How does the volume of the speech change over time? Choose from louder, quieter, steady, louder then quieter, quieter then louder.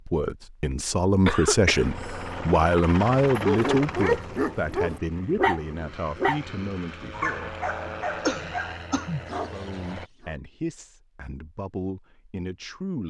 quieter.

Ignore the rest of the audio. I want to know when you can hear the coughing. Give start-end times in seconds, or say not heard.
1.2-2.4, 8.2-9.2.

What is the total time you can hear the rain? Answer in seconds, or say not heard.
not heard.